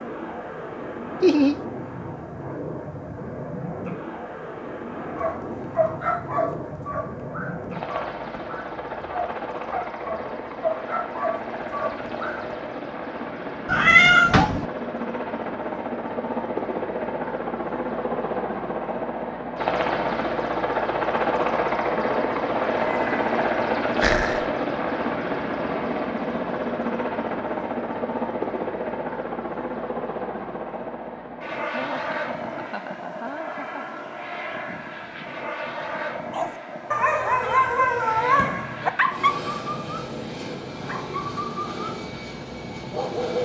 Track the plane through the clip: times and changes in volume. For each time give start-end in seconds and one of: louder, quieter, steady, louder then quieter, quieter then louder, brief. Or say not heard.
0.0-43.4 louder then quieter.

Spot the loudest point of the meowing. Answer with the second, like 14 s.
14 s.